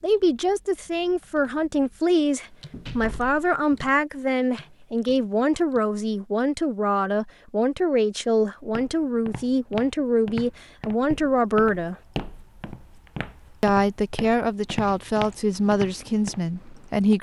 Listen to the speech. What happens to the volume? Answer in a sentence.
The volume of the speech stays about the same.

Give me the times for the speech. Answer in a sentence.
The speech can be heard from 0.0 to 11.9 s and from 13.6 to 17.1 s.